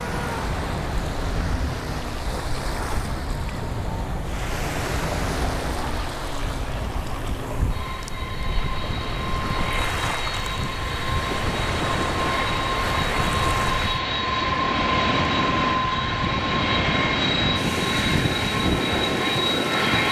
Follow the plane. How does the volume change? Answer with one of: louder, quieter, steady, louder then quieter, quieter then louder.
louder.